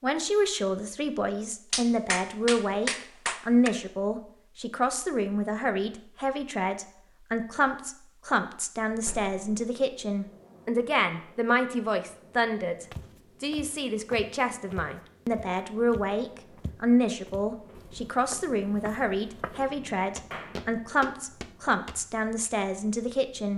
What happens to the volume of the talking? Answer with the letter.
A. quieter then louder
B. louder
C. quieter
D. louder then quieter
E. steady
E.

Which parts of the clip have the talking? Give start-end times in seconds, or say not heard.
0.0-23.5.